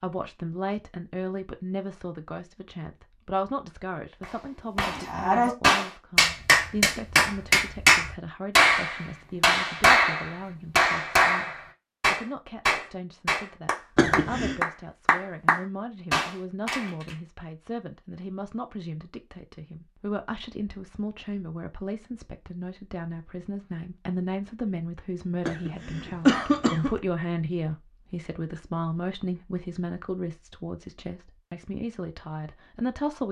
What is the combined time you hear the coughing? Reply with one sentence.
You can hear the coughing for 2 seconds altogether.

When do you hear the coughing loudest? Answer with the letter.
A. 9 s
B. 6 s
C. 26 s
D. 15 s
C.